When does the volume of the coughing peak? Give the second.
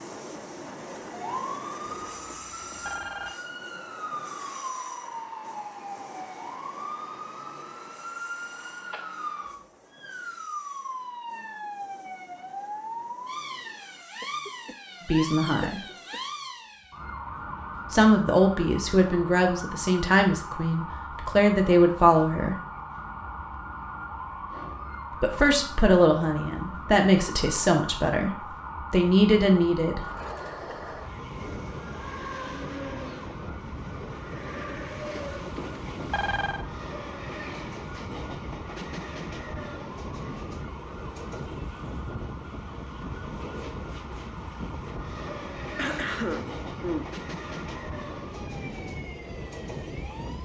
46 s.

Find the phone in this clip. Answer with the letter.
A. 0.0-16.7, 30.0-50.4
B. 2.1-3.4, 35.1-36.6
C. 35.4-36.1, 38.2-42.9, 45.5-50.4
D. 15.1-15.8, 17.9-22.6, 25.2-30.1
B.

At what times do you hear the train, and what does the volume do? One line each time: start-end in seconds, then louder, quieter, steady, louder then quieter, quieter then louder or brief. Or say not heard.
0.0-16.7 quieter
30.0-50.4 steady.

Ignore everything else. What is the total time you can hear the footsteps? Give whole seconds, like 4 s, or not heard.
not heard.